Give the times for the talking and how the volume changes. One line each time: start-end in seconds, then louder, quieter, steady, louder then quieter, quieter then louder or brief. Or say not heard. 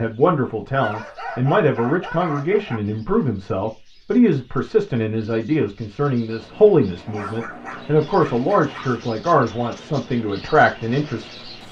0.0-11.3 steady.